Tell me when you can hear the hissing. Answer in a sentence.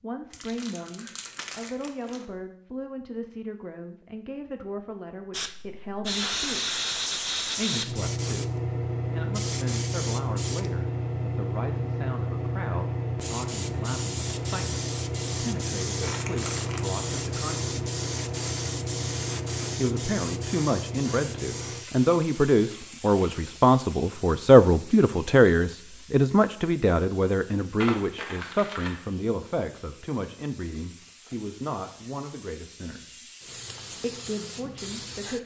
You can hear the hissing from 5.3 to 35.4 s.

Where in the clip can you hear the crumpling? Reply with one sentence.
The crumpling can be heard from 0.3 to 2.2 s, from 16.0 to 16.9 s and from 27.8 to 28.9 s.